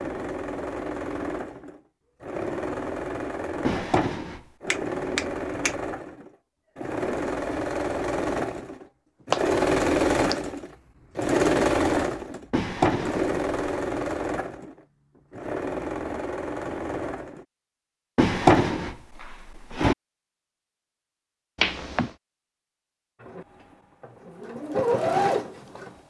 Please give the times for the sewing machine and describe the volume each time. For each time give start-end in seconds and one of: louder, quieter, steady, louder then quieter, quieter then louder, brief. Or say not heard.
0.0-17.4 louder then quieter
23.1-25.9 brief.